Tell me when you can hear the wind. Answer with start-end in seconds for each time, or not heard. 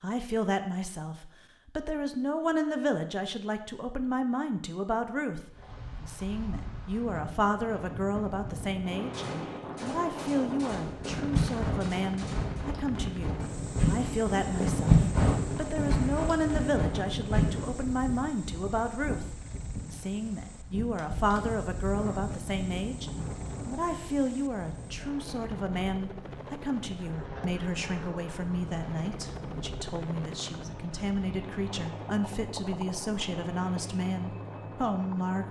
5.4-35.4.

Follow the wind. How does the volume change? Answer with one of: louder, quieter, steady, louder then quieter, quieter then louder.
louder then quieter.